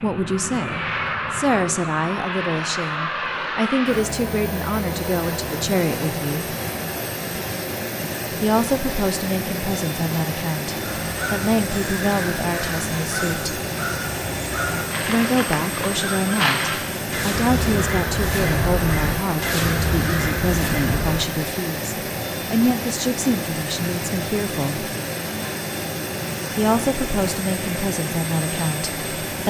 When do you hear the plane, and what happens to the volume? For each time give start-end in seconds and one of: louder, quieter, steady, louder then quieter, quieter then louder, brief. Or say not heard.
0.0-29.4 steady.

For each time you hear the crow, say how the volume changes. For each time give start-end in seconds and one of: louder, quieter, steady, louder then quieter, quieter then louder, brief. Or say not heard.
10.8-21.2 louder.